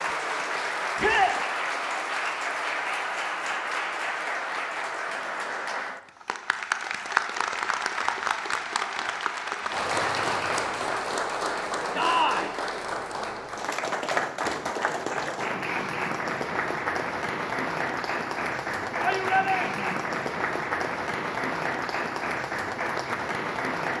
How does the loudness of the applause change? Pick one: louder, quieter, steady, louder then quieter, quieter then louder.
steady.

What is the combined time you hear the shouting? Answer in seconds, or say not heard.
2 s.